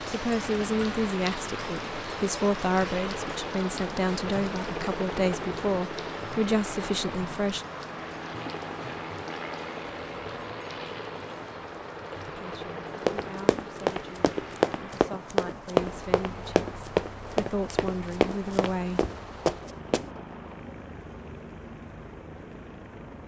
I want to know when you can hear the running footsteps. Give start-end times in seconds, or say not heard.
13.1-20.1.